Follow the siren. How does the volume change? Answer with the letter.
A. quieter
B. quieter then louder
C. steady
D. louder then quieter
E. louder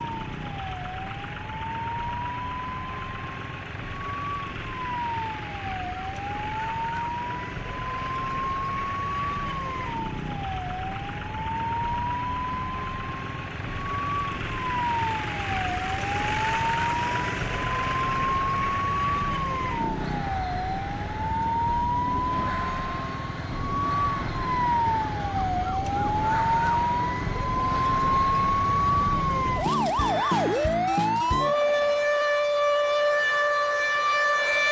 E.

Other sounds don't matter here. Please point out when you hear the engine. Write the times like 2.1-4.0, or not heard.
0.0-32.1.